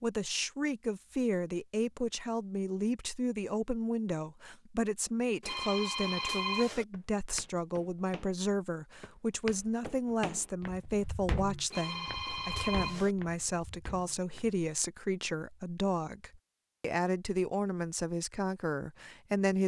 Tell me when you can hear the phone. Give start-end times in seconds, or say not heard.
5.4-6.8, 11.7-13.2.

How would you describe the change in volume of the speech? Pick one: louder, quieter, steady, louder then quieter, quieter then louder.
steady.